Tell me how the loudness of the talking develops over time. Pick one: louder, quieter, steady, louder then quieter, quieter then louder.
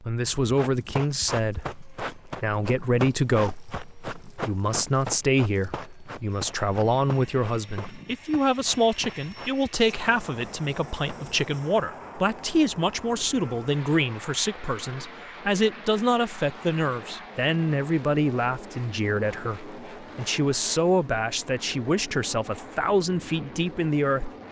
steady.